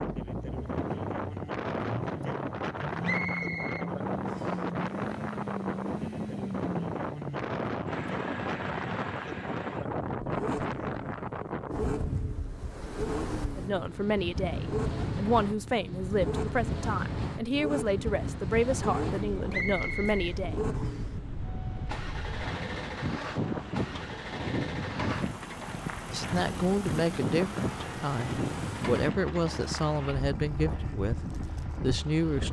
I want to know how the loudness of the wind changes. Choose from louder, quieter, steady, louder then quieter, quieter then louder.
steady.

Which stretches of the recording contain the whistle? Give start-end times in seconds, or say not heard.
3.0-4.6, 19.5-21.1.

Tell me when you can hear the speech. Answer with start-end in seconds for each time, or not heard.
13.6-20.6, 26.1-32.4.